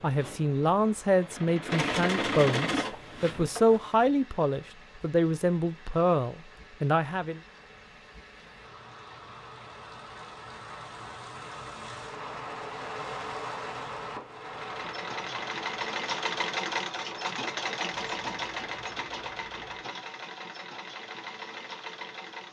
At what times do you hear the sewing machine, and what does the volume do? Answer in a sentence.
You can hear the sewing machine from 0.0 to 4.0 s, getting louder then quieter; and from 14.4 to 22.4 s, getting quieter.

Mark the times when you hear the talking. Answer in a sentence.
The talking can be heard from 0.0 to 7.4 s.